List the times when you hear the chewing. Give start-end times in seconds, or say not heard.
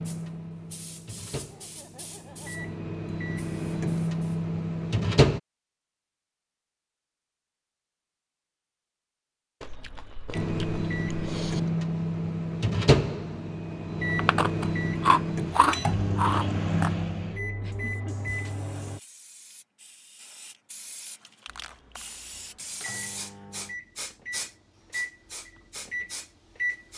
9.6-11.6, 14.2-16.9.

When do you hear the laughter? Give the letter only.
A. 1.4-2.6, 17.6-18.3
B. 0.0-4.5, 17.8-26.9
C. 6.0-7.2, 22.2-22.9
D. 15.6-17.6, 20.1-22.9
A.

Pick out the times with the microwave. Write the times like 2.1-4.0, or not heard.
0.0-5.4, 10.3-19.0, 21.4-26.9.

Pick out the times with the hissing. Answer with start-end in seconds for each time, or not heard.
0.0-4.5, 17.8-26.9.